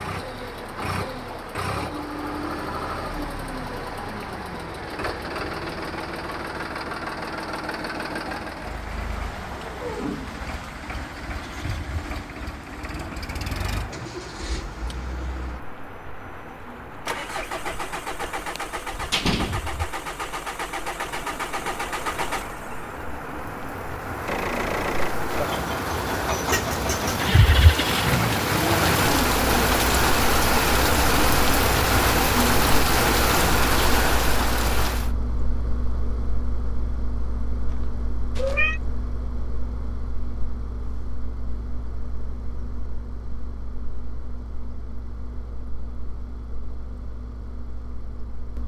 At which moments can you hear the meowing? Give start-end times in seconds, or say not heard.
37.7-38.8.